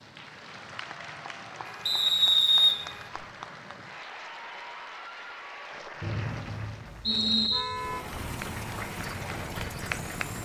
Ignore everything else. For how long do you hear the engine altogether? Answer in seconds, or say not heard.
3 s.